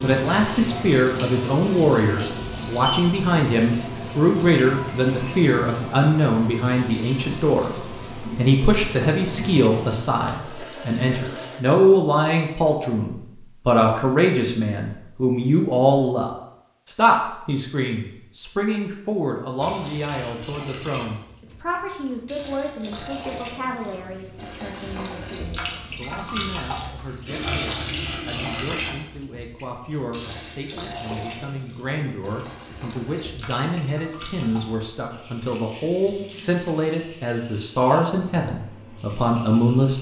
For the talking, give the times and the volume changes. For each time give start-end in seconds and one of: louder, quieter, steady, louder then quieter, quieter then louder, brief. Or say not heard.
0.0-39.9 quieter then louder.